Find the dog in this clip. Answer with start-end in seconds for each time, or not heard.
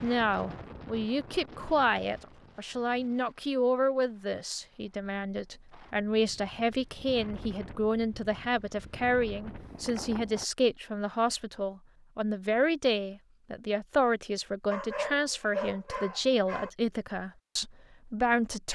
14.7-16.7.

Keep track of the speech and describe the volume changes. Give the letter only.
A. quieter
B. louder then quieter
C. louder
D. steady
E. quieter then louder
D.